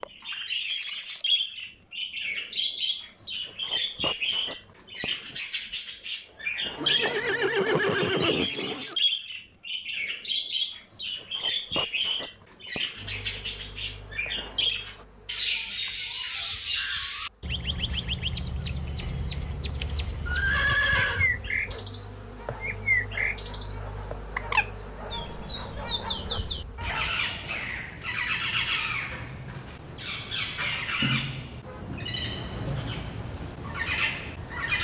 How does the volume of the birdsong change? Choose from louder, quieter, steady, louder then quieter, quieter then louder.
steady.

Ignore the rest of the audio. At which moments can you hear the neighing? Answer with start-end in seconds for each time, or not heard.
6.8-8.9, 20.2-21.3.